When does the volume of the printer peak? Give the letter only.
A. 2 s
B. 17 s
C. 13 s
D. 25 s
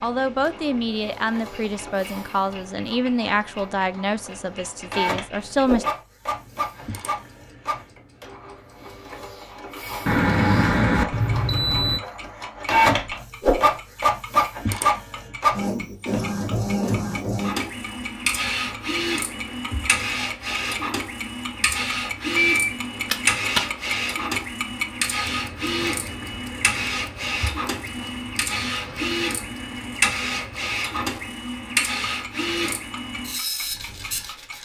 C.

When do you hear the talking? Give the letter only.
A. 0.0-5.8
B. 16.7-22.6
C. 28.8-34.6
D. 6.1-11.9
A.